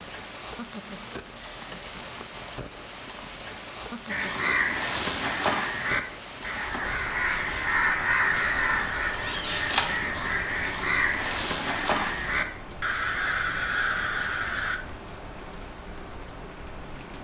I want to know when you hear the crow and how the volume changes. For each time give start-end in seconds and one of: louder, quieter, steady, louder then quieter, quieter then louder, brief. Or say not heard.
4.0-14.8 steady.